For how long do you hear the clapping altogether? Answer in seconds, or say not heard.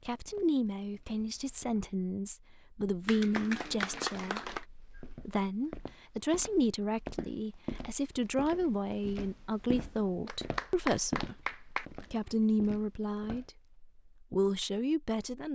3 s.